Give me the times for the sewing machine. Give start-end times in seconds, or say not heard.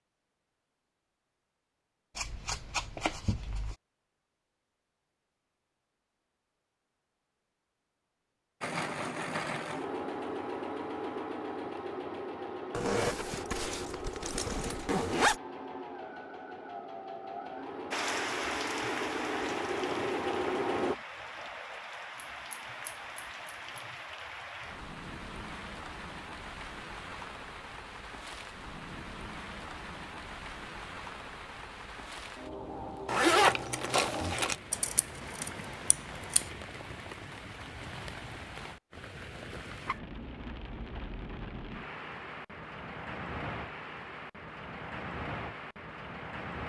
8.6-20.9.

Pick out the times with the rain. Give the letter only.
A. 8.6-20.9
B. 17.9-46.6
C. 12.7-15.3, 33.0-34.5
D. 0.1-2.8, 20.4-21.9
B.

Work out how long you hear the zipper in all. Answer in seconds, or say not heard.
4 s.